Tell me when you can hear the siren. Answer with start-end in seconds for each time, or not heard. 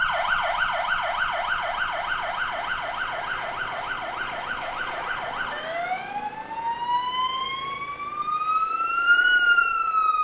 0.0-10.1.